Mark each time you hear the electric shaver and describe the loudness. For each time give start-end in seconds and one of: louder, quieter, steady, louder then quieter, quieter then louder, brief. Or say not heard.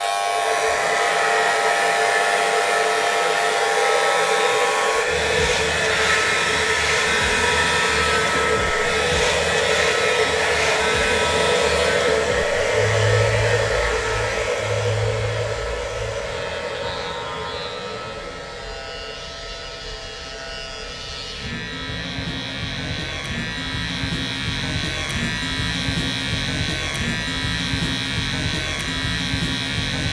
0.0-30.0 quieter then louder.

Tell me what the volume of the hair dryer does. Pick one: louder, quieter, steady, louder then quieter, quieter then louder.
quieter.